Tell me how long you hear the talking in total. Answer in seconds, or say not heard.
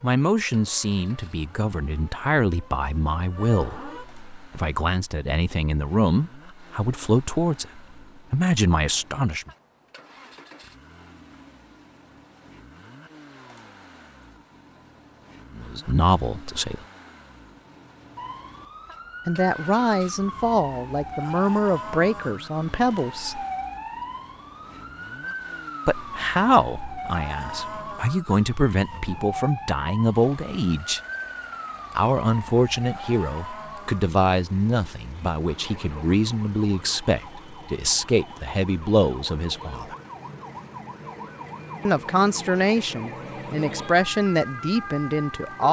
32 s.